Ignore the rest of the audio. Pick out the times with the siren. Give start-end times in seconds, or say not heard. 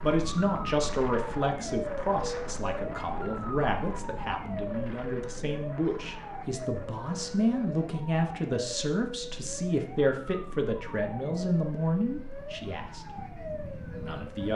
0.0-14.5.